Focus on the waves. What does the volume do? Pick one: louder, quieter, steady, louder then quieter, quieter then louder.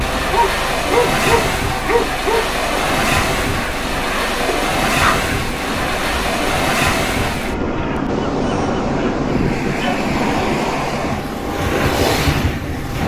steady.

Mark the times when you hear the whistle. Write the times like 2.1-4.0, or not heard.
not heard.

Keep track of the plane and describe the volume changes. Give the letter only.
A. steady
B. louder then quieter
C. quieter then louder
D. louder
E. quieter
A.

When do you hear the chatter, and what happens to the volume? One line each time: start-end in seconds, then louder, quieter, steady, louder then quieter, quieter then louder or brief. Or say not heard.
not heard.